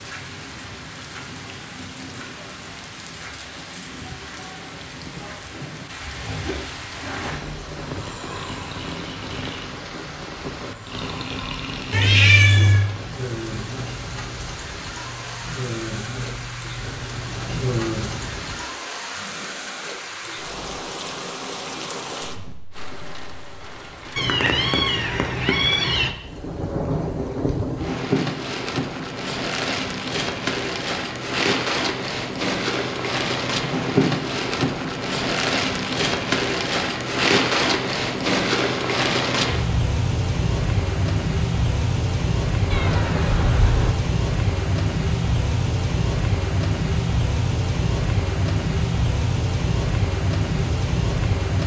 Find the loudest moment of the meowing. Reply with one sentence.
The volume of the meowing peaks at 12 seconds.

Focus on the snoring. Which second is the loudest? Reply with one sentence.
The volume of the snoring peaks at 18 seconds.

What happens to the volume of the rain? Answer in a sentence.
The loudness of the rain goes up.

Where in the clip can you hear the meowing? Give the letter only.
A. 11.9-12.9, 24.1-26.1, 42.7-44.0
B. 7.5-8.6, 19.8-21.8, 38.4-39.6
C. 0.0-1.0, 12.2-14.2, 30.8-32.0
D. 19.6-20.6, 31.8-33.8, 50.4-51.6
A.